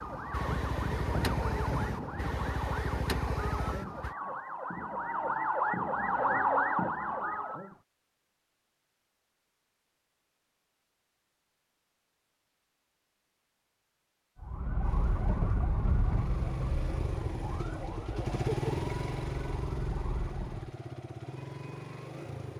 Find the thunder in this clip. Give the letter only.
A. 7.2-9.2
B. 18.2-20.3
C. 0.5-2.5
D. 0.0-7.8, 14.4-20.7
C.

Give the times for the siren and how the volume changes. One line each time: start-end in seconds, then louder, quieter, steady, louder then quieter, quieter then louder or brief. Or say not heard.
0.0-7.8 louder
14.4-20.7 quieter.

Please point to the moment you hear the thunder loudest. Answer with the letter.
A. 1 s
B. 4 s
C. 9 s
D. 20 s
A.